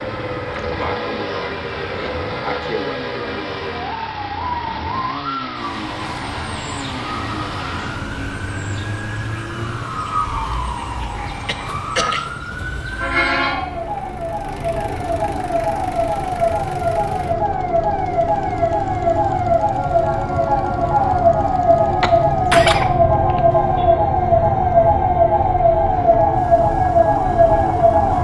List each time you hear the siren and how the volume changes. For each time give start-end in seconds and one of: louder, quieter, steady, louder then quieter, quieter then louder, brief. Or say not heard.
0.0-28.1 louder.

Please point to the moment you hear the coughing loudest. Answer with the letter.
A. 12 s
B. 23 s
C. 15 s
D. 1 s
B.